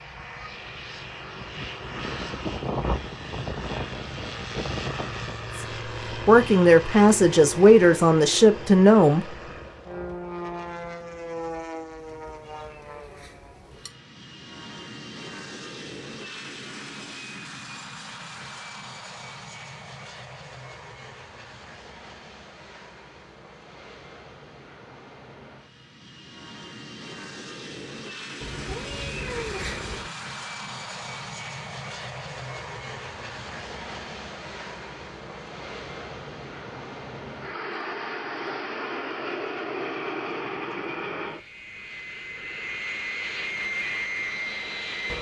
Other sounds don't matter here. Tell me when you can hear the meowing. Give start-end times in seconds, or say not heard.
12.0-13.9, 28.4-30.1.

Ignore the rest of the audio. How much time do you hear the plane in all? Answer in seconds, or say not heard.
45 s.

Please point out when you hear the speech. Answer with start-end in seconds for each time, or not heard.
5.5-9.3.